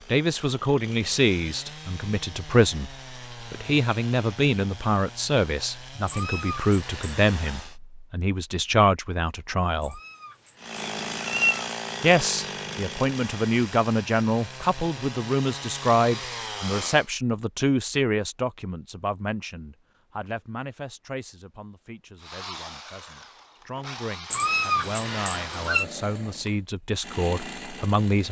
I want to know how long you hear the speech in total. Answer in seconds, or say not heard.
26 s.